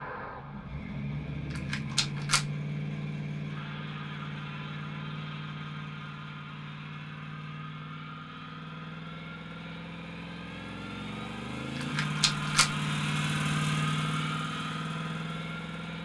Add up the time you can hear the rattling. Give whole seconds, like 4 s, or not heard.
2 s.